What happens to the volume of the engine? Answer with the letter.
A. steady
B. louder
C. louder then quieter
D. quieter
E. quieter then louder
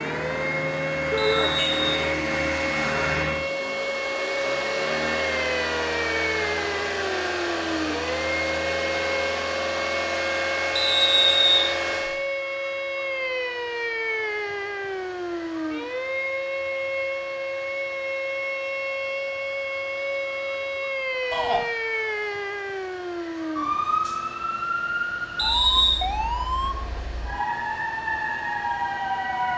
D.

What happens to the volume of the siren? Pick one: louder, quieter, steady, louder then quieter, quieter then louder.
steady.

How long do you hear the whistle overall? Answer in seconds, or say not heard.
3 s.